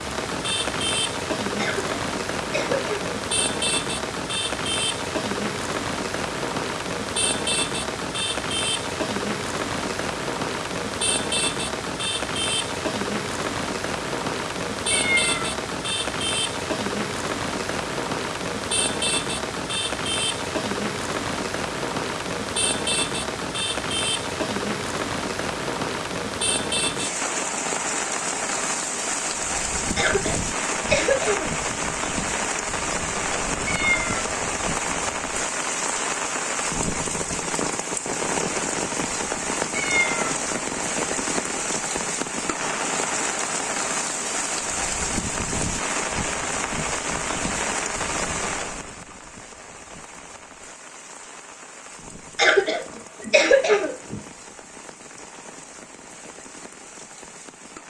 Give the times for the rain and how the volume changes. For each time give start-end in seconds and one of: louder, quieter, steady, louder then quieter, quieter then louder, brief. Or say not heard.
0.0-57.8 quieter.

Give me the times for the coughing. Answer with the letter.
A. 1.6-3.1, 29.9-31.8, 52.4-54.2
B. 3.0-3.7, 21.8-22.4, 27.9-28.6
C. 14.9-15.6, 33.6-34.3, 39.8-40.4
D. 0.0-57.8
A.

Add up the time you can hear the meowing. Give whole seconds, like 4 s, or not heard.
2 s.